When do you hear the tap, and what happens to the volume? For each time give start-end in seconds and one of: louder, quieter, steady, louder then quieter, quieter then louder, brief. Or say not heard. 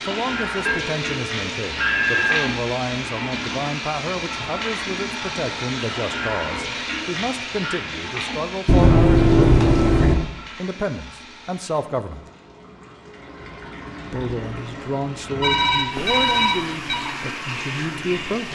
0.0-18.5 quieter then louder.